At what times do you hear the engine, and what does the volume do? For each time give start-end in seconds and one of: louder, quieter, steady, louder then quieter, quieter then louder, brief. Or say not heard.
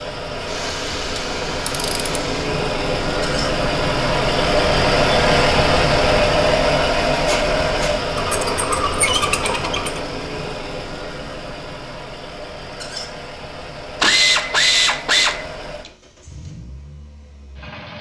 0.0-17.9 louder then quieter.